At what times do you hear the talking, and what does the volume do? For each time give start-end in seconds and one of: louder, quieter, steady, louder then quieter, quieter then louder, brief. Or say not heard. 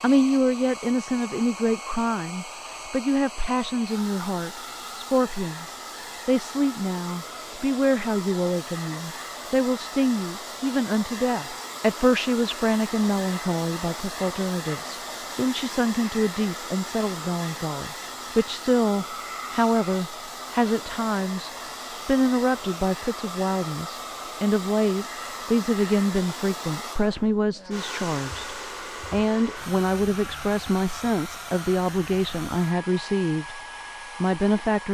0.0-33.6 steady
34.2-34.8 brief.